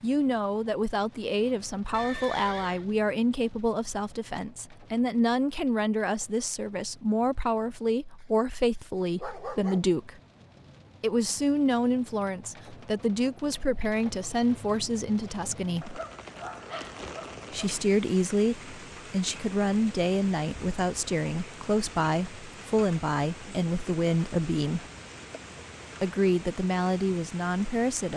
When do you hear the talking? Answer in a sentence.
The talking can be heard from 0.0 to 10.2 s, from 11.0 to 16.0 s, from 17.5 to 24.9 s and from 26.0 to 28.1 s.